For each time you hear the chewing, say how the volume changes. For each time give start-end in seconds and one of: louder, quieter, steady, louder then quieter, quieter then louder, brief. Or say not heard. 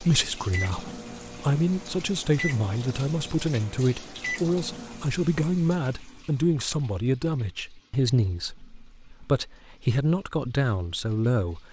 not heard.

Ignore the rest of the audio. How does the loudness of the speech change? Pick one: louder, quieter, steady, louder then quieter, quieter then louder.
steady.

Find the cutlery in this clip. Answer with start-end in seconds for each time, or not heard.
not heard.